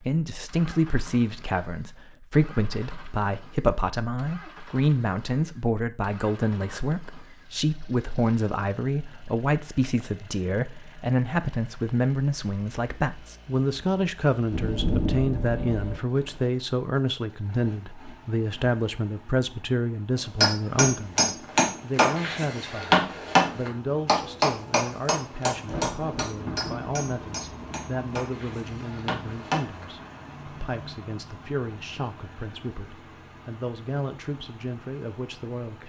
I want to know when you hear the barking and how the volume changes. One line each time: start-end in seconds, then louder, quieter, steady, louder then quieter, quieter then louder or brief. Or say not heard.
not heard.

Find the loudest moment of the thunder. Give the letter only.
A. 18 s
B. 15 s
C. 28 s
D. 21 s
B.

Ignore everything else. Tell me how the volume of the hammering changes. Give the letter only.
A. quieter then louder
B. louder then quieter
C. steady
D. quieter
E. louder
D.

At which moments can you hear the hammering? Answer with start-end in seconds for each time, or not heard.
20.4-29.9.